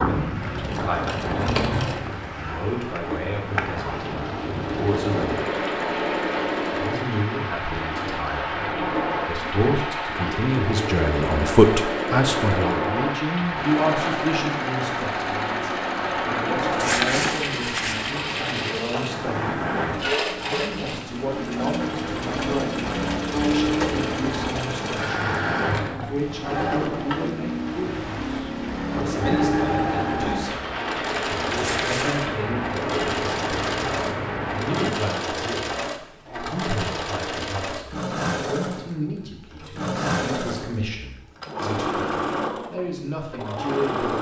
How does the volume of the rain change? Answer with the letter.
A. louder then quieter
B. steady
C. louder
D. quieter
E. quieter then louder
B.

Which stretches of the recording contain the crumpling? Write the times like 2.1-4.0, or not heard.
16.6-18.1, 31.5-32.2.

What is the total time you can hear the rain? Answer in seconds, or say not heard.
35 s.